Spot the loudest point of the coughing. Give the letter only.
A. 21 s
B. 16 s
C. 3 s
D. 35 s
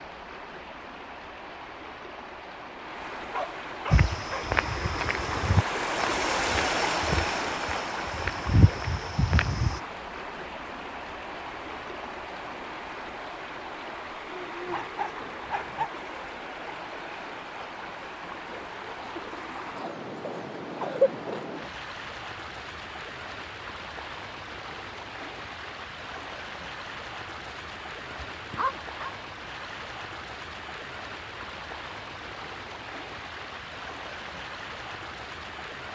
A.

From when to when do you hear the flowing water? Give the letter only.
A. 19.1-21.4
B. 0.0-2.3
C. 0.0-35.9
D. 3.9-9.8
C.